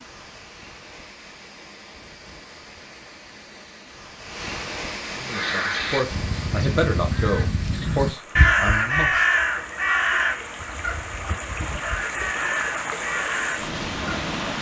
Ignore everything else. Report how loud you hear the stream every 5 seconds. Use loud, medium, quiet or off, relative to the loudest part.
medium, medium, loud.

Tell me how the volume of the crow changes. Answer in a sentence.
The volume of the crow goes up, then down.